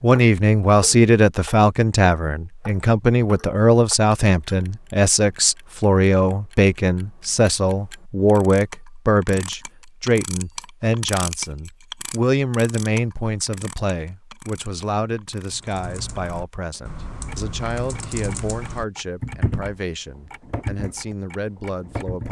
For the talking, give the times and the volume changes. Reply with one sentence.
You can hear the talking from 0.0 to 22.2 s, getting quieter.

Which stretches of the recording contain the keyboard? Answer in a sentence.
The keyboard can be heard from 15.5 to 19.8 s and from 20.4 to 22.2 s.